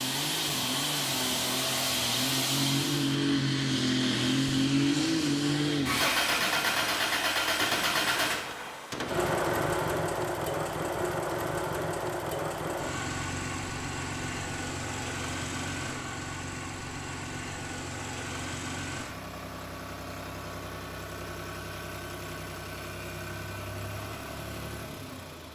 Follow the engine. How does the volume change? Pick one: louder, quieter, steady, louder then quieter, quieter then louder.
quieter.